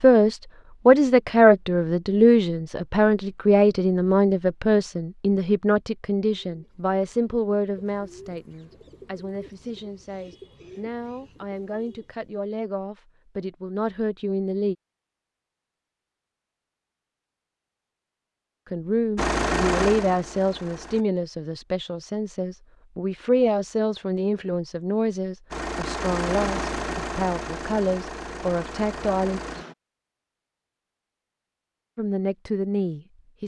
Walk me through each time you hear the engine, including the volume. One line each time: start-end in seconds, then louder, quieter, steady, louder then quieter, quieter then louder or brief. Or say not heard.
19.1-21.1 brief
25.5-29.8 quieter.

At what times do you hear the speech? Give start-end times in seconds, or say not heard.
0.0-14.8, 18.7-29.4, 31.9-33.4.